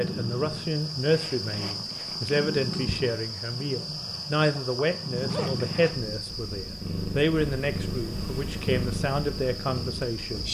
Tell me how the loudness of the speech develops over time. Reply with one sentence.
The volume of the speech stays about the same.